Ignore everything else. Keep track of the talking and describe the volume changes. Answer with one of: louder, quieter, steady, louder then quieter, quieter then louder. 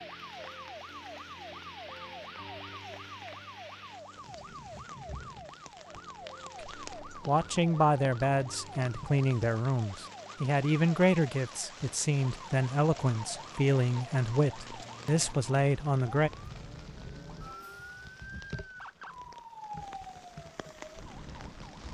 steady.